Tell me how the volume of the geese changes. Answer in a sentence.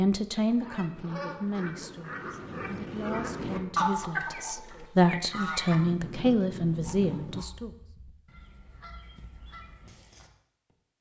The volume of the geese goes up, then down.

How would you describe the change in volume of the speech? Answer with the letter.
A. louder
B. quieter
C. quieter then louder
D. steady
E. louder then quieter
C.